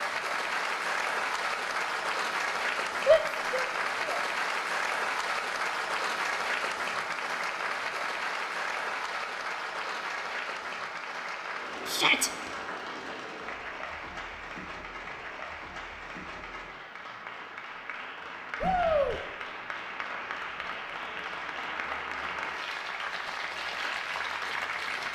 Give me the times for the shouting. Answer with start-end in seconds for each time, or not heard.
3.0-4.2, 11.8-12.3, 18.6-19.2.